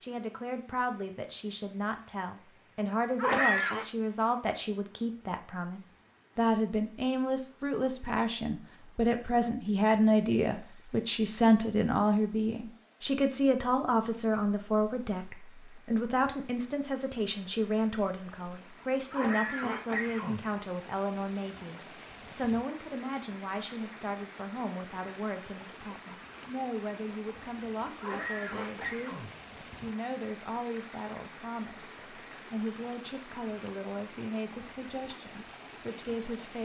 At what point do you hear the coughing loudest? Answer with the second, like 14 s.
3 s.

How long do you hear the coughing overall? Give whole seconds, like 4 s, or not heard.
4 s.